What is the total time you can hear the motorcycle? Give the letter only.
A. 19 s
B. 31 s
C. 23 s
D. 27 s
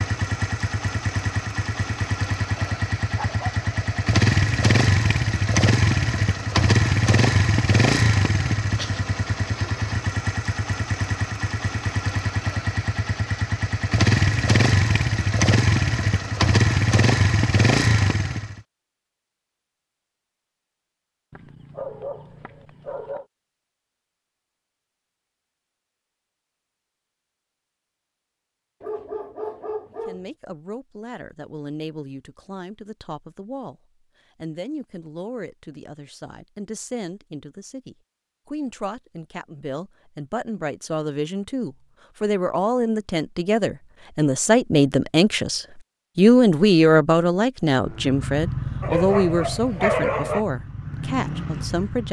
C.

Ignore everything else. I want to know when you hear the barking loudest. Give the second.
50 s.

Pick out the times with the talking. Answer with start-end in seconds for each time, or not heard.
30.1-33.8, 34.4-52.0.